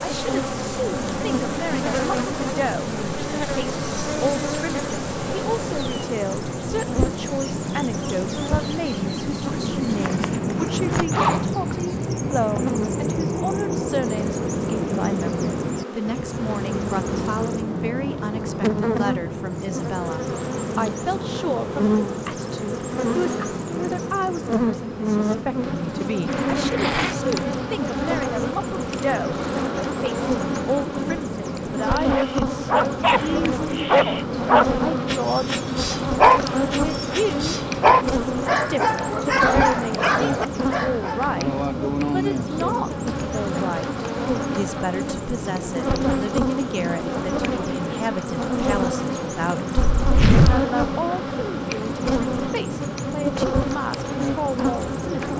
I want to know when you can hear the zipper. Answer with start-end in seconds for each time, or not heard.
10.3-11.4, 26.2-27.1, 49.8-50.6.